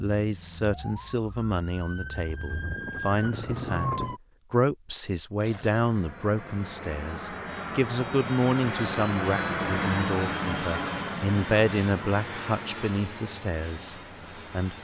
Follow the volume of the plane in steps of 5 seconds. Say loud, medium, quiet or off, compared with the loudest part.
off, loud, loud.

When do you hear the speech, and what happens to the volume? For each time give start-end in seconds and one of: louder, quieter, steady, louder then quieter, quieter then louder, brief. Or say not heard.
0.0-14.7 steady.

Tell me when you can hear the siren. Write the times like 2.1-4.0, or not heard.
0.2-4.2.